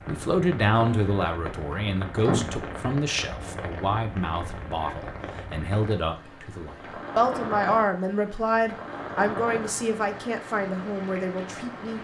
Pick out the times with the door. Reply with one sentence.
You can hear the door from 1.1 to 2.6 s.